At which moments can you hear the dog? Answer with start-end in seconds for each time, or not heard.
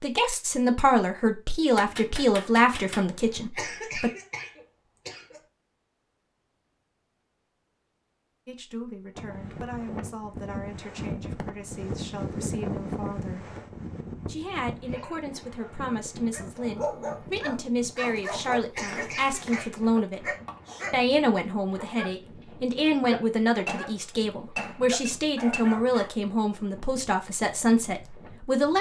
14.9-22.1, 22.9-23.9, 24.9-26.1.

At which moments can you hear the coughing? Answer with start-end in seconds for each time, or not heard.
3.5-5.5, 18.7-19.9.